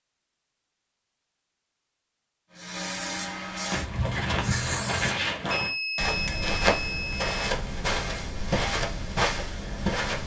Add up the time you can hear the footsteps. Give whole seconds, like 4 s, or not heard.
7 s.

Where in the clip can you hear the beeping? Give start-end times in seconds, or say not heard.
5.5-7.5.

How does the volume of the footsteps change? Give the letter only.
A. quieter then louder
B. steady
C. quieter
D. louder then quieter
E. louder
B.